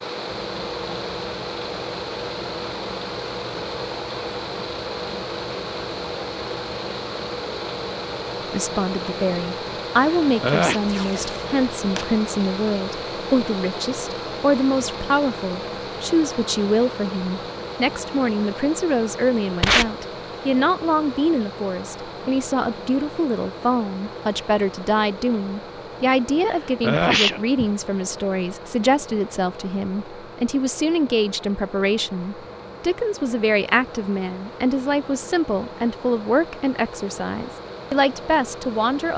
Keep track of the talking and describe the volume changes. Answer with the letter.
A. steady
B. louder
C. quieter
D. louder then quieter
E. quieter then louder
A.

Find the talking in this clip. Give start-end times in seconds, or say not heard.
8.5-39.1.